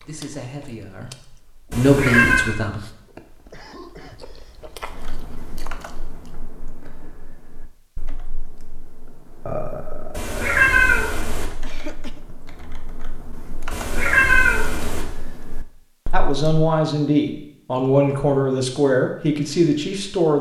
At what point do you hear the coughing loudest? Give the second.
12 s.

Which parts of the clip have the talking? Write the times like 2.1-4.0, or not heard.
0.0-2.8, 16.1-20.3.